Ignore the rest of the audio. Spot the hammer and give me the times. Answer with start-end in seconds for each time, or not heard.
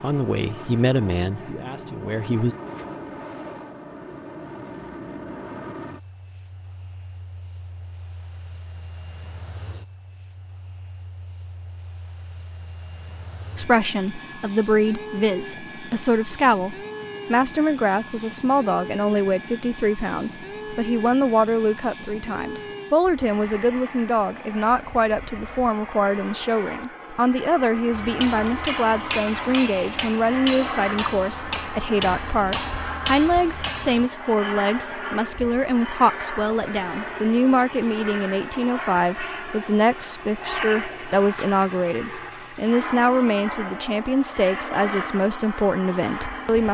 27.9-34.1.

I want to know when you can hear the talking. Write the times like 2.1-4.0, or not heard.
0.0-2.5, 13.6-46.7.